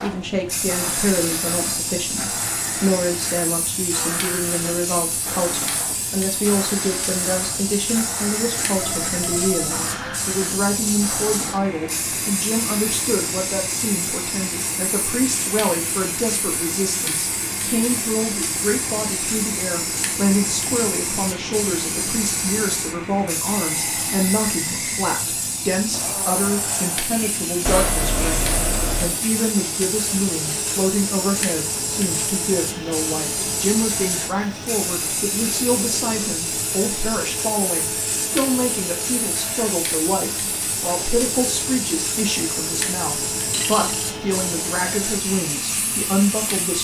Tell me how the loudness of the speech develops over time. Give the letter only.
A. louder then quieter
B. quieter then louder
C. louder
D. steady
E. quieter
D.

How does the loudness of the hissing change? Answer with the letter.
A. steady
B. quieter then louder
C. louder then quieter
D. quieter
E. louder
A.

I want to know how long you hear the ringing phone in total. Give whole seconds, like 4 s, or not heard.
3 s.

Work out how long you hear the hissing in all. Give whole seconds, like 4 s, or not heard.
47 s.